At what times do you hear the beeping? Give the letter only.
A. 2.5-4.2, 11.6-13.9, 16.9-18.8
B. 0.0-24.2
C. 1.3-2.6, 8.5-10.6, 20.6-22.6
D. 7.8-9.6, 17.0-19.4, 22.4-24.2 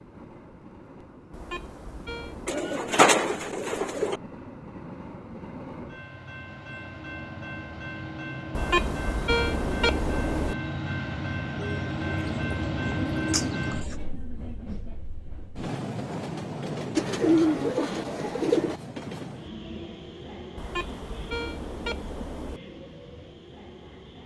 C.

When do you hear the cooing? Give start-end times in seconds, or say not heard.
2.5-4.2, 11.6-13.9, 16.9-18.8.